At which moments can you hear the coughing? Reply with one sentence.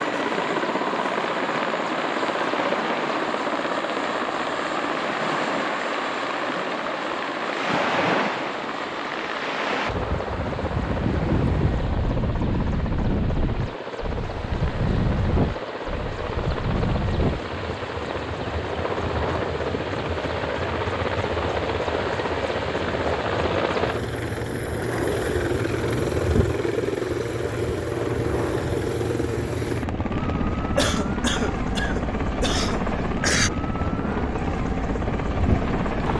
You can hear the coughing from 30.8 to 33.5 s.